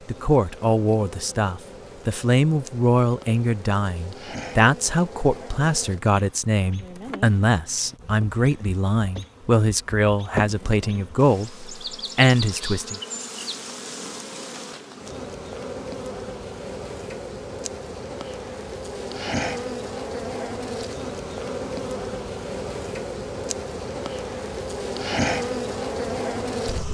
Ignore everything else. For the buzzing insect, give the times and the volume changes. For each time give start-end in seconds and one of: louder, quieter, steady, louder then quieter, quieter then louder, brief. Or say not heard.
0.0-26.9 louder.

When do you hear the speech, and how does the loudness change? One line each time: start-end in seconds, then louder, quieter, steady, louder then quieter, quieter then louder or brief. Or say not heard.
0.1-13.0 steady.